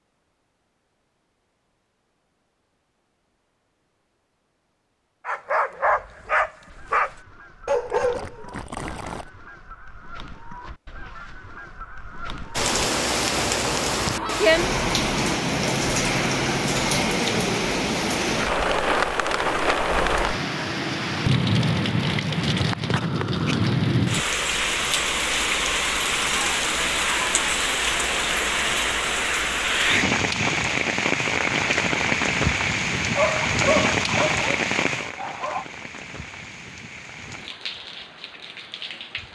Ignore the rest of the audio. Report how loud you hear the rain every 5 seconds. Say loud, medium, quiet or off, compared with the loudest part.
off, off, loud, loud, loud, loud, loud, quiet.